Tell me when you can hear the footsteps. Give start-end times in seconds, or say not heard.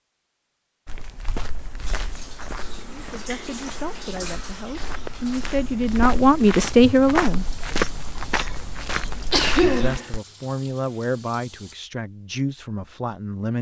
0.8-10.2.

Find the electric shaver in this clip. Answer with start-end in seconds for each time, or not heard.
not heard.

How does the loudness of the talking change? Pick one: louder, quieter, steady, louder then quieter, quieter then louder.
louder then quieter.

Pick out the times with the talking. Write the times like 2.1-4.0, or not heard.
2.9-7.5, 9.3-13.5.